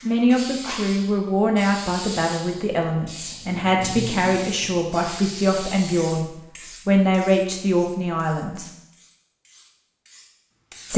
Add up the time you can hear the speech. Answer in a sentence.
The speech can be heard for 9 seconds in total.